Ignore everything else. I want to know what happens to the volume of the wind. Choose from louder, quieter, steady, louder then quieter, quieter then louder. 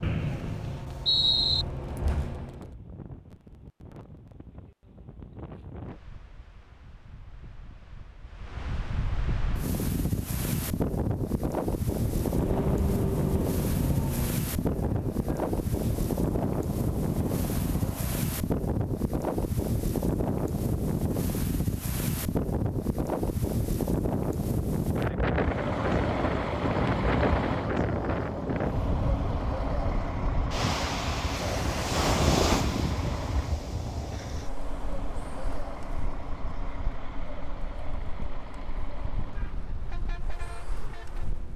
louder then quieter.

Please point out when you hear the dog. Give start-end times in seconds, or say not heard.
not heard.